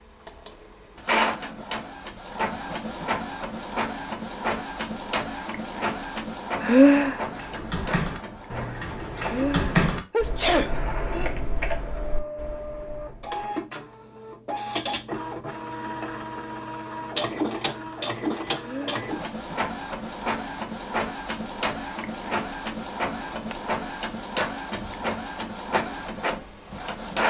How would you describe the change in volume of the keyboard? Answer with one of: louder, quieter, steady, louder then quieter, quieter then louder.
louder then quieter.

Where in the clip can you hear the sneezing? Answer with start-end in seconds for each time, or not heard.
6.6-7.2, 9.2-11.3, 18.6-19.1.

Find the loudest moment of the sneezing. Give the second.
7 s.